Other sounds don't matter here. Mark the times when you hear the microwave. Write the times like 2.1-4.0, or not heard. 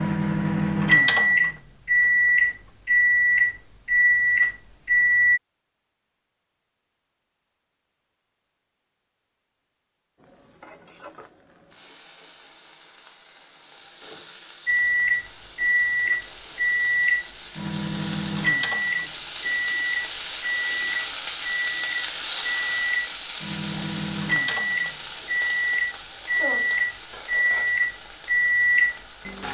0.0-5.4, 14.7-29.4.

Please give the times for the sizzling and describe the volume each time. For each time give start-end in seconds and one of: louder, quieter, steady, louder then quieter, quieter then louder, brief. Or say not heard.
10.2-29.4 louder then quieter.